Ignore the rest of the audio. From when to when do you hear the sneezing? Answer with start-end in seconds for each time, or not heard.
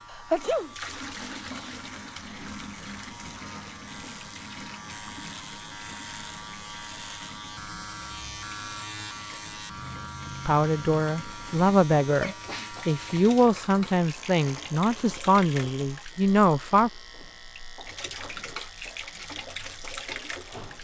0.1-0.7, 12.2-13.3.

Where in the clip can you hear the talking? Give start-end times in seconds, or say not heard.
10.4-16.9.